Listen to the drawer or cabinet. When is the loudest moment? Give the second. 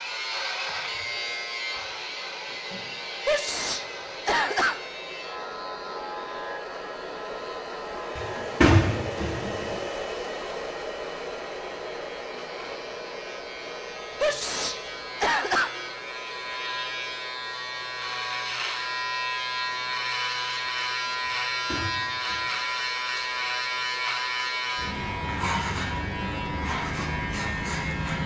9 s.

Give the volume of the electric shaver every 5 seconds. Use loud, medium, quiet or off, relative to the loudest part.
medium, medium, quiet, loud, loud, loud.